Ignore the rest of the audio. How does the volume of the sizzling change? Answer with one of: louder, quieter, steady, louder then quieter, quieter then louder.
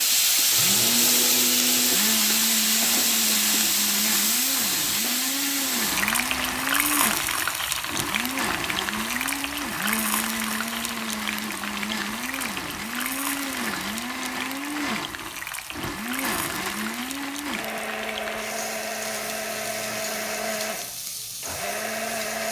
quieter.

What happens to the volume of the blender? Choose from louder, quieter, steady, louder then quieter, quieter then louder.
steady.